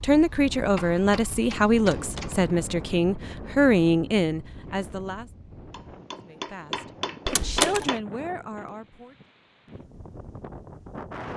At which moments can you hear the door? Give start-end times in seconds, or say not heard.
1.9-2.5, 7.2-7.9.